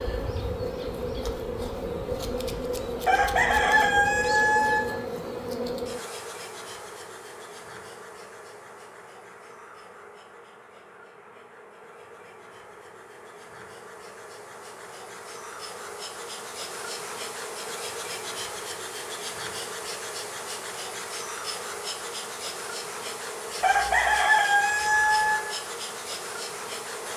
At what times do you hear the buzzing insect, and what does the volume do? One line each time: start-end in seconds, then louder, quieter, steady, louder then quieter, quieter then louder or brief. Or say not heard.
0.0-27.1 quieter then louder.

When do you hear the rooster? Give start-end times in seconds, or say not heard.
3.0-4.8, 23.6-25.4.